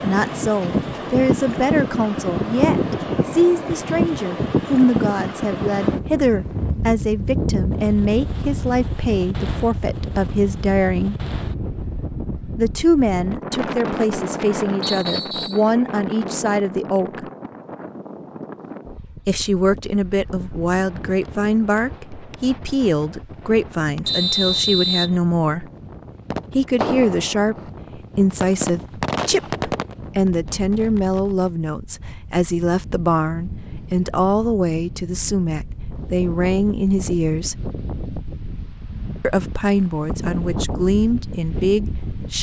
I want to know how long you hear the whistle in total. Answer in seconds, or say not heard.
2 s.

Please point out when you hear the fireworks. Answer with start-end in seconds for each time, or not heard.
26.3-31.6.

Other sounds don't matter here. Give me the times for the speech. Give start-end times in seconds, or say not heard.
0.0-11.2, 12.6-17.2, 19.2-25.6, 26.6-37.5, 39.2-42.3.